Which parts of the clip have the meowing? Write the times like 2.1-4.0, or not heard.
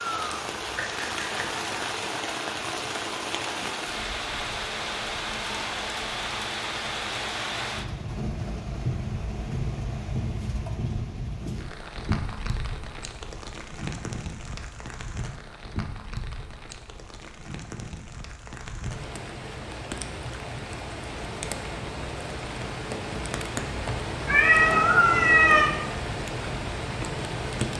0.8-1.7, 24.2-25.7.